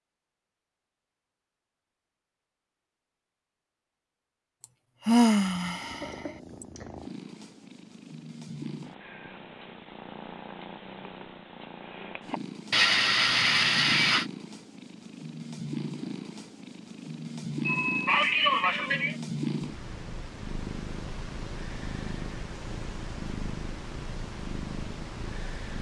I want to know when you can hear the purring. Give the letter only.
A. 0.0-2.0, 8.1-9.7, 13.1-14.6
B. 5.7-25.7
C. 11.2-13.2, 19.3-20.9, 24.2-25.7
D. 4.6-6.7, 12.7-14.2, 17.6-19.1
B.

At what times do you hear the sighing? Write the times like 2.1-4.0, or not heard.
4.6-6.7, 12.7-14.2, 17.6-19.1.